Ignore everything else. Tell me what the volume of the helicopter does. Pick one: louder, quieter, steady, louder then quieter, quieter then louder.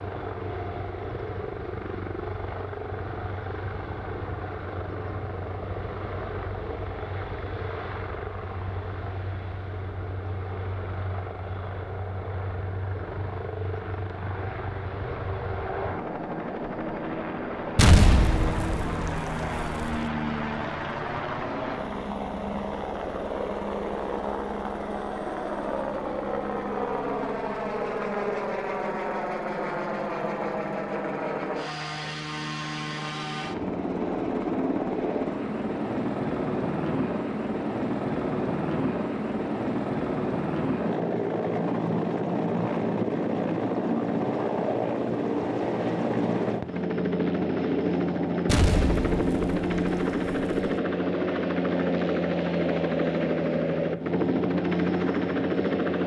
louder.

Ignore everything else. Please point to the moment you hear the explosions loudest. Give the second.
18 s.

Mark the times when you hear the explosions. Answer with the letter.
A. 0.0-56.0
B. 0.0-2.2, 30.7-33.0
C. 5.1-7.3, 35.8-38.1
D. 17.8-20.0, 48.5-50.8
D.